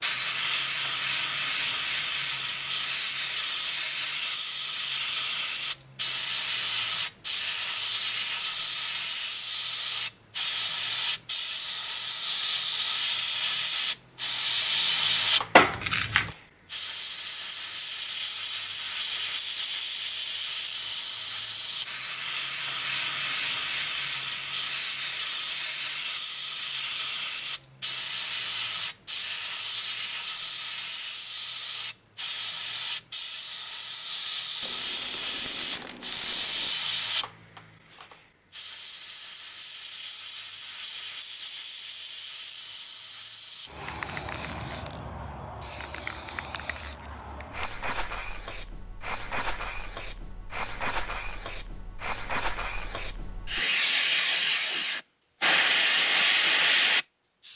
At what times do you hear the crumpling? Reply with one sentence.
The crumpling can be heard from 15.6 to 16.4 s and from 34.6 to 36.8 s.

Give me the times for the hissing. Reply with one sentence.
The hissing can be heard from 0.0 to 57.5 s.